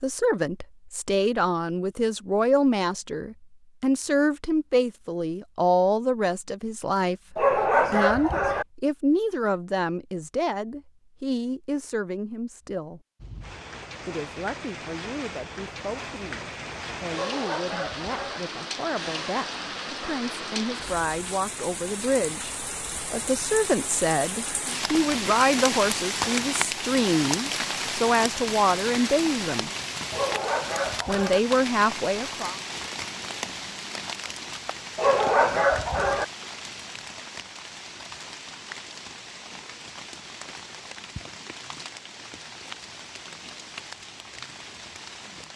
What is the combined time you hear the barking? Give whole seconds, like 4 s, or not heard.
5 s.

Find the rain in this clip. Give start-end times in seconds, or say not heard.
13.2-45.5.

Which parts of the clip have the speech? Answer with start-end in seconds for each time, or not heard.
0.0-13.0, 14.1-29.7, 31.1-32.5.